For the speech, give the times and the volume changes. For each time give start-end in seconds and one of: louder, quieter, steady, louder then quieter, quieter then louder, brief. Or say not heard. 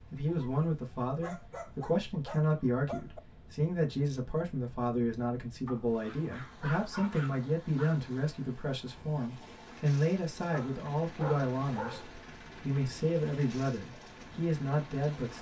0.0-15.3 steady.